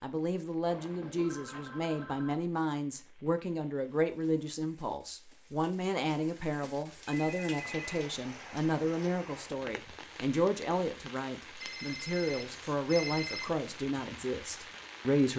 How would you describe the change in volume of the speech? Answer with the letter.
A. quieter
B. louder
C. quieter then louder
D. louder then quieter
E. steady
E.